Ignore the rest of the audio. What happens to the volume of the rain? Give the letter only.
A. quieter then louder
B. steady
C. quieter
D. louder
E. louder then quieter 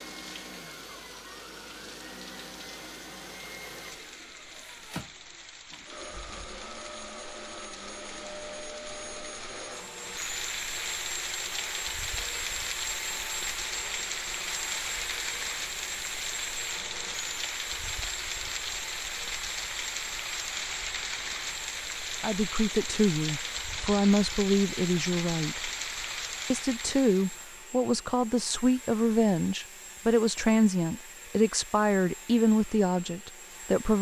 D.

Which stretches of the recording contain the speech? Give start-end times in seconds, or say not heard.
22.2-25.7, 26.5-33.9.